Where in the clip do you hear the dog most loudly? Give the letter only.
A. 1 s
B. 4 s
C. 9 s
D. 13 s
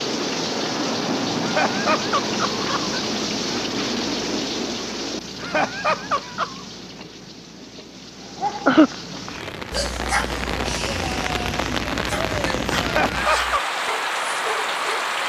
C.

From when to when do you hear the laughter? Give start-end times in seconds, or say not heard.
1.4-3.0, 5.4-6.7, 12.8-13.6.